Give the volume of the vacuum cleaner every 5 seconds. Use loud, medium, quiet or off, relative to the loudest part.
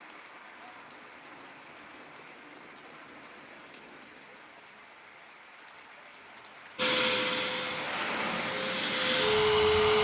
off, loud.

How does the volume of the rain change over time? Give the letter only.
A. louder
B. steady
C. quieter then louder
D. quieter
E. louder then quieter
A.